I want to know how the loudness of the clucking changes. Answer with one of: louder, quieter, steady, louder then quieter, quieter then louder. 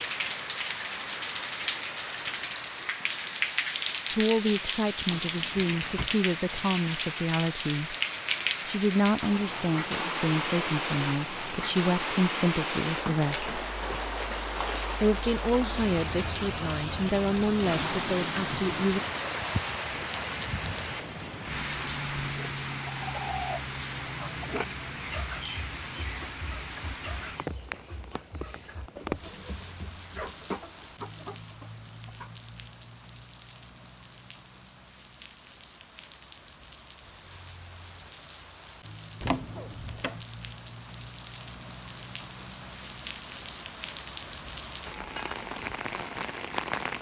quieter then louder.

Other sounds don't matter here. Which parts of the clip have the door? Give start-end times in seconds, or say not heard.
5.1-6.1, 39.2-40.2.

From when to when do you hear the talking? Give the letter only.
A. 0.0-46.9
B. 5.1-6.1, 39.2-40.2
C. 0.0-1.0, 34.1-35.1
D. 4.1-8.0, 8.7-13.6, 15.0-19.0
D.